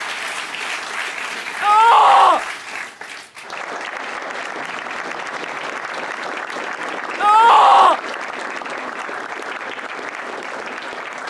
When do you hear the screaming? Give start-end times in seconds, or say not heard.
1.6-2.5, 7.2-8.0.